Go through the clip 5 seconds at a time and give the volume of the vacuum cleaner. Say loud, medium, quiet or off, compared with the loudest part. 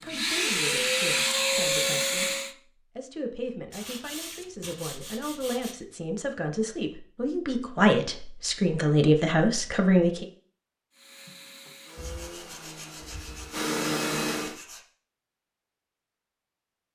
loud, off, medium, off.